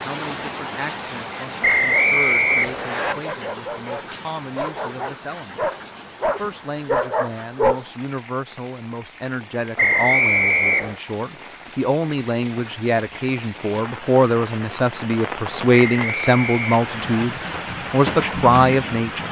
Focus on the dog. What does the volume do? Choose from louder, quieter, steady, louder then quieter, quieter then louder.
louder.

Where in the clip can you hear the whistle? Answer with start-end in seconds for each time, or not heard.
1.6-3.1, 9.8-10.9, 15.7-17.2.